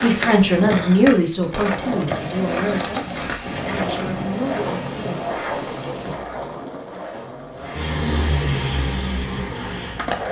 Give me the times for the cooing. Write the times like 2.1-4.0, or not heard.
not heard.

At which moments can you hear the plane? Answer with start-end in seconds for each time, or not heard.
7.5-10.2.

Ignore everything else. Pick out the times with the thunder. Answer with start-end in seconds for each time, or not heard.
2.1-6.2.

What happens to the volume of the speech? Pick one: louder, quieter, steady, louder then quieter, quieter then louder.
quieter.